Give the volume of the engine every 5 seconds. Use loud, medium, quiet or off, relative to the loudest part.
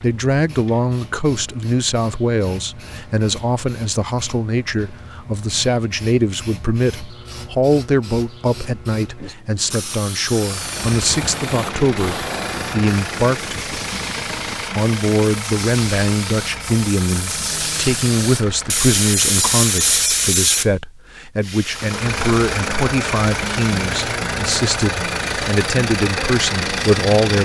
off, off, medium, medium, loud, loud.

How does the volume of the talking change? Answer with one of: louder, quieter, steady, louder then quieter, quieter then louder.
steady.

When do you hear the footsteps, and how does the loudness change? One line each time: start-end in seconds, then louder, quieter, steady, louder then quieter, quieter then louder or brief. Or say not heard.
not heard.